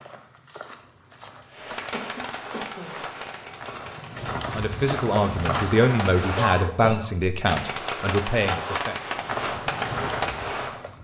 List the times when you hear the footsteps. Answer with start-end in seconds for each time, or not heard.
0.0-6.3, 9.0-11.0.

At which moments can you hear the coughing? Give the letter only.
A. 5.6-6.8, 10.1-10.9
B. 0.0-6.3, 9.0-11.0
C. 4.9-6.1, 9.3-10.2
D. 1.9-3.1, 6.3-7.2
D.